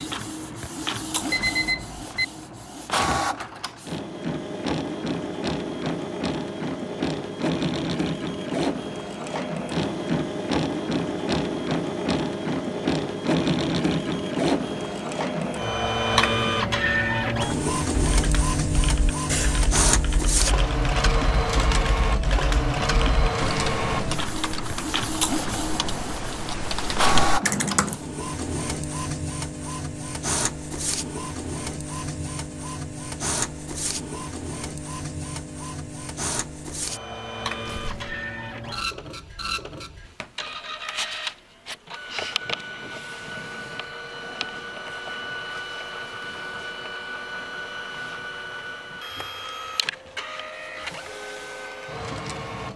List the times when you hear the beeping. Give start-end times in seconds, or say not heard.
1.3-2.2.